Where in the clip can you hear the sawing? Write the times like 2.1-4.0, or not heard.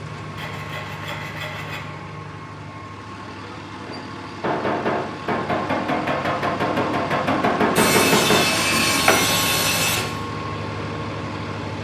0.3-1.9, 7.8-10.1.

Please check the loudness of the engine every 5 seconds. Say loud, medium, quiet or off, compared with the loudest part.
medium, loud, loud.